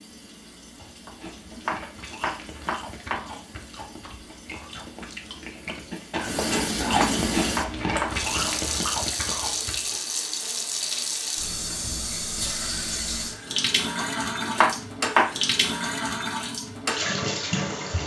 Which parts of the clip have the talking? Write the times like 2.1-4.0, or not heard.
not heard.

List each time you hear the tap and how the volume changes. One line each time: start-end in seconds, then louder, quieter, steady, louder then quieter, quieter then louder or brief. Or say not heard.
0.0-18.0 louder.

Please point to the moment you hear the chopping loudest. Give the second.
15 s.